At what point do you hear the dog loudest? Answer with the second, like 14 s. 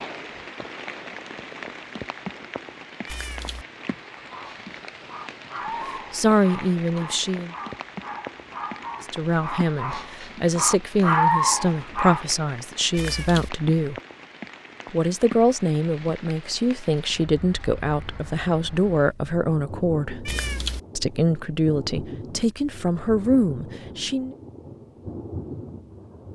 11 s.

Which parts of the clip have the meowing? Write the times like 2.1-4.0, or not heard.
3.0-3.6, 12.9-13.5, 20.2-20.8.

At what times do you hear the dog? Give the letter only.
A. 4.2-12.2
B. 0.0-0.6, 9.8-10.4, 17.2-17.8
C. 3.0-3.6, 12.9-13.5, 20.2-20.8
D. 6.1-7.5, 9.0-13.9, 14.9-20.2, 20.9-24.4
A.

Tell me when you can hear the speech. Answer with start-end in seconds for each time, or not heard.
6.1-7.5, 9.0-13.9, 14.9-20.2, 20.9-24.4.